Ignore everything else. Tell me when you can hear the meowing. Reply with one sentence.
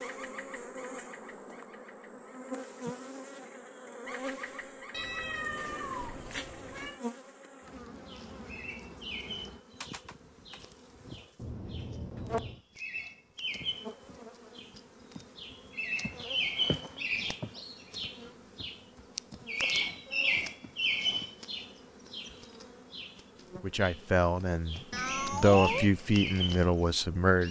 You can hear the meowing from 4.9 to 7.0 s, from 11.3 to 12.6 s and from 24.9 to 25.9 s.